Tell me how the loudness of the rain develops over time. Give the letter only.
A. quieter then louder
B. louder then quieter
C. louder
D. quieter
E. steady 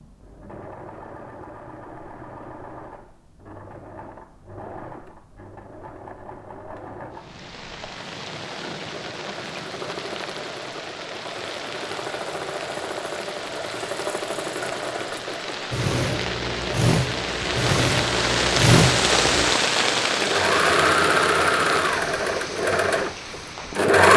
B.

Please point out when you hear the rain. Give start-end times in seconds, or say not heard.
7.1-23.9.